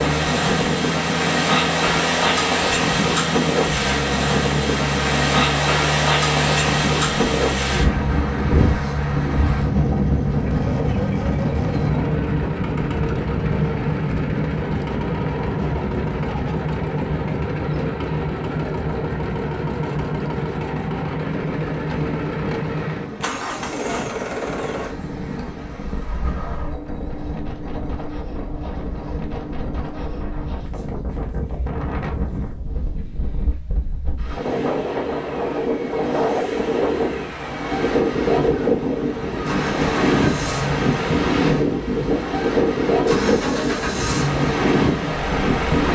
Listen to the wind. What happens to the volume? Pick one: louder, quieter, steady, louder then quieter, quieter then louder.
quieter then louder.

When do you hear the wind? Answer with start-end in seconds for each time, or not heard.
0.0-45.9.